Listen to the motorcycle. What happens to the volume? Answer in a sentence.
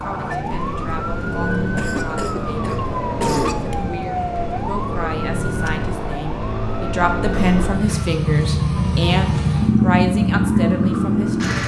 The loudness of the motorcycle goes up.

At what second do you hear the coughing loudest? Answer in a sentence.
The volume of the coughing peaks at 3 seconds.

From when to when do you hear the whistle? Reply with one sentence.
You can't hear the whistle here.